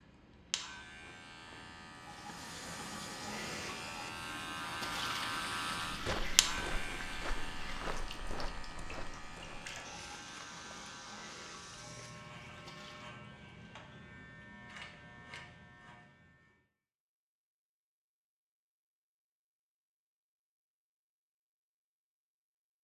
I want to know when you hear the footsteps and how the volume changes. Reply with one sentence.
The footsteps can be heard from 5.8 to 12.2 s, getting quieter.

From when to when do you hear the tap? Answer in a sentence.
You can hear the tap from 1.9 to 13.2 s.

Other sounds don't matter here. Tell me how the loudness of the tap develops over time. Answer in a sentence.
The volume of the tap goes down.